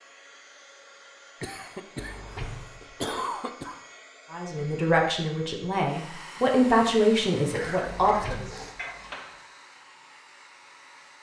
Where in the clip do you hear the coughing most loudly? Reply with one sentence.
The loudest moment of the coughing is at 3 seconds.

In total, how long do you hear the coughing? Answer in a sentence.
You can hear the coughing for 4 seconds altogether.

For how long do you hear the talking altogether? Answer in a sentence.
The talking can be heard for 4 seconds in total.